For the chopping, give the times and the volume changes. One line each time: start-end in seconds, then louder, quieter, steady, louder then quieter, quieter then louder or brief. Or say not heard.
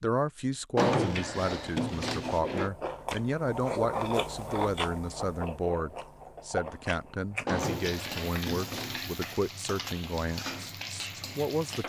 not heard.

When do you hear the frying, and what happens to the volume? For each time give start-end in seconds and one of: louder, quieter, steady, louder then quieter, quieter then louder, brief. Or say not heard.
7.5-11.8 steady.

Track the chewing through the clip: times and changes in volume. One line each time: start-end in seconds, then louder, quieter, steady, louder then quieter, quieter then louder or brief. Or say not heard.
1.4-7.5 louder then quieter.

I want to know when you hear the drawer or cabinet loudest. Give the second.
1 s.